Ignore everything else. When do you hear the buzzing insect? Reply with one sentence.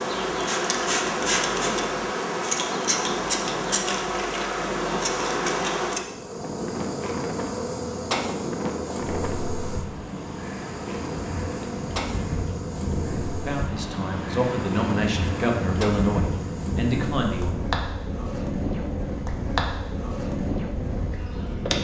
You can hear the buzzing insect from 0.0 to 21.8 s.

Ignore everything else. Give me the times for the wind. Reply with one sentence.
The wind can be heard from 0.0 to 21.8 s.